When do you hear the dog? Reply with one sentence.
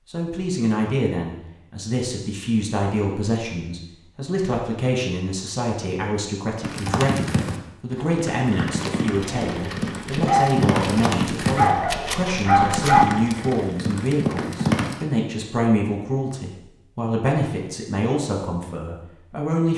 You can hear the dog from 9.2 to 13.1 s.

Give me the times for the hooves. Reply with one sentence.
You can hear the hooves from 6.5 to 15.1 s.